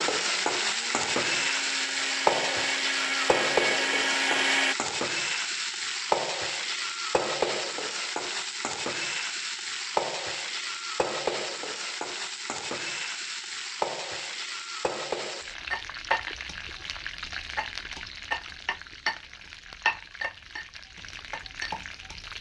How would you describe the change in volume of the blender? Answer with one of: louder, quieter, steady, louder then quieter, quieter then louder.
louder.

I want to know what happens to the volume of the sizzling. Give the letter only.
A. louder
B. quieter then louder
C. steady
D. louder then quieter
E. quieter
E.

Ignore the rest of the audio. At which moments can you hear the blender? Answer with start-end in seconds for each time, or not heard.
0.1-4.8.